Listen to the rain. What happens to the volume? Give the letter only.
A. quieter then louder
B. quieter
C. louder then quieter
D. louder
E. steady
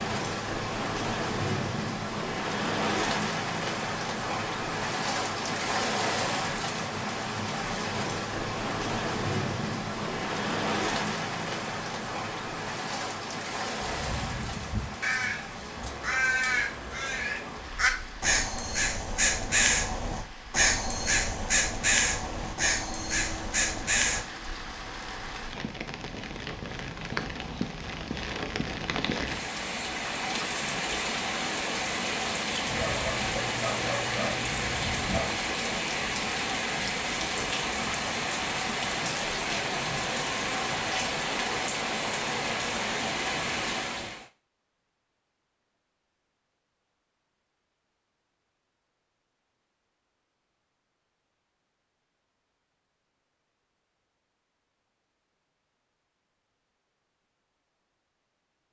A.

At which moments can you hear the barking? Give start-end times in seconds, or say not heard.
32.7-35.3.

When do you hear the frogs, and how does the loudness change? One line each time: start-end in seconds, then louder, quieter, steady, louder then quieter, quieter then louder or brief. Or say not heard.
not heard.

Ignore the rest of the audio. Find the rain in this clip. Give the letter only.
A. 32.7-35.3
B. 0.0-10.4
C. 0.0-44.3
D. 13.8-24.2
C.